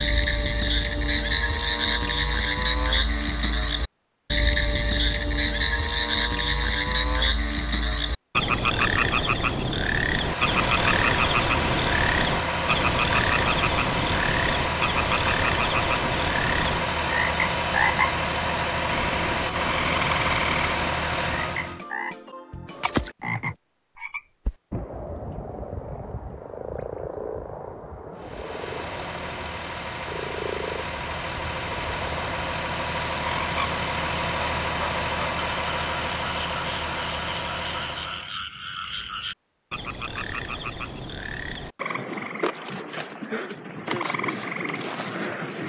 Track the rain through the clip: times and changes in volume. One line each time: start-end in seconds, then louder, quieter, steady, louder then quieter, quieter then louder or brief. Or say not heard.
not heard.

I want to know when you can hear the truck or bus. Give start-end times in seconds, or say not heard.
10.0-21.8, 28.1-38.4.